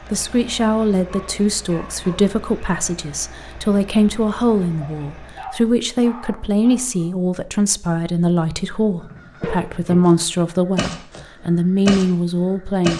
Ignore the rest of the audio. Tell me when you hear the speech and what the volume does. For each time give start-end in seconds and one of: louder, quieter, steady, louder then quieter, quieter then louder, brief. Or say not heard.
0.1-12.9 steady.